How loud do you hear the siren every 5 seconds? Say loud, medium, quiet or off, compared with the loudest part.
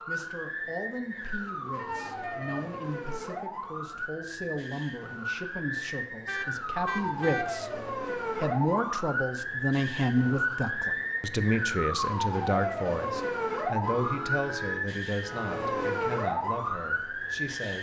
medium, loud, loud, loud.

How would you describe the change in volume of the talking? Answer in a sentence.
The loudness of the talking goes up, then down.